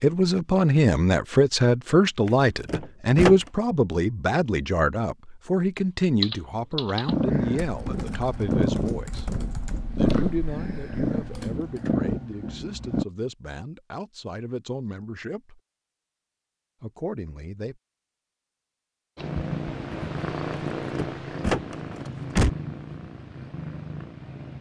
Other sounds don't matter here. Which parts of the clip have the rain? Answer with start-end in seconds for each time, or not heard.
not heard.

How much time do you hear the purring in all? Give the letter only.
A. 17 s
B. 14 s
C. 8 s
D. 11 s
D.